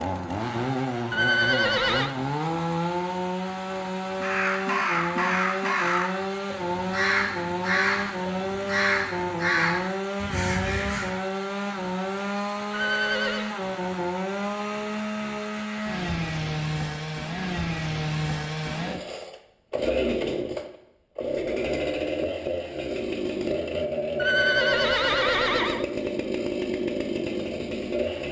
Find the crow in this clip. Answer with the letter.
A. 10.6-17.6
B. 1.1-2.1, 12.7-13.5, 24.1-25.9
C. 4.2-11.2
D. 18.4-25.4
C.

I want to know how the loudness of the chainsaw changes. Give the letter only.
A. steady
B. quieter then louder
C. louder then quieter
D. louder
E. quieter
A.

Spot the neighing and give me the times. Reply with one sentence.
You can hear the neighing from 1.1 to 2.1 s, from 12.7 to 13.5 s and from 24.1 to 25.9 s.